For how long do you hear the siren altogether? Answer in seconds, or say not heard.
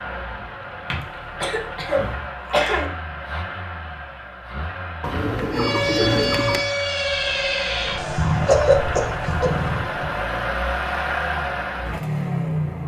5 s.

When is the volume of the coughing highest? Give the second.
9 s.